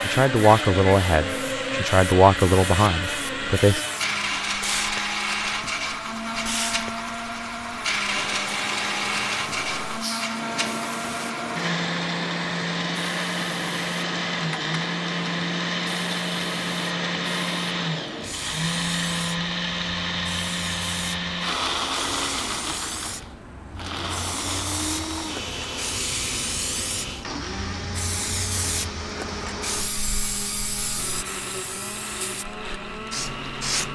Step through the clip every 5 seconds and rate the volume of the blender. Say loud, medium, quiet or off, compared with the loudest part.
loud, loud, loud, loud, loud, medium, medium.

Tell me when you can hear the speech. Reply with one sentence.
You can hear the speech from 0.0 to 3.9 s.